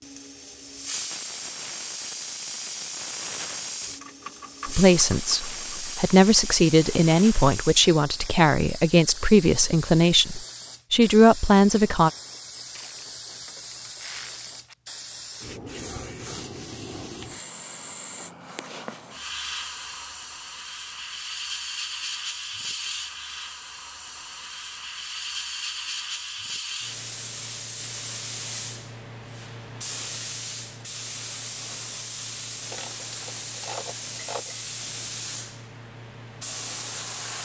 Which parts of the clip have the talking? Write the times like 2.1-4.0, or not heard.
4.7-12.1.